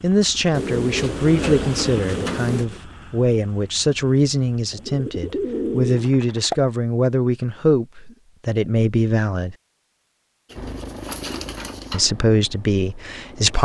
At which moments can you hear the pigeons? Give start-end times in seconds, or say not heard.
0.5-2.8, 4.7-6.5, 10.5-12.1.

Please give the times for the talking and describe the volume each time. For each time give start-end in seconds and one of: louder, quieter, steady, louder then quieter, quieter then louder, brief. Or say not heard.
0.0-9.6 steady
11.9-13.6 brief.